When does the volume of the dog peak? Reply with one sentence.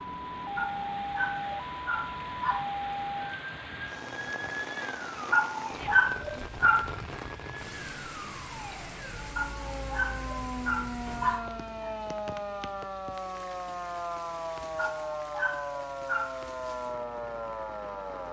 The loudest moment of the dog is at 6 seconds.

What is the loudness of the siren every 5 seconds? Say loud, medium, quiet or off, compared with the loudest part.
loud, medium, loud, loud.